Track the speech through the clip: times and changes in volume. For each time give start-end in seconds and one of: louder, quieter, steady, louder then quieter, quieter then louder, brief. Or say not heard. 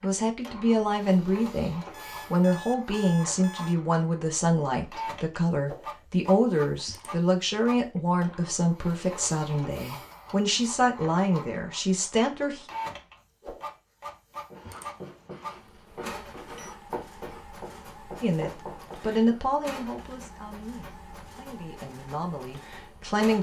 0.0-12.7 steady
18.2-23.3 quieter then louder.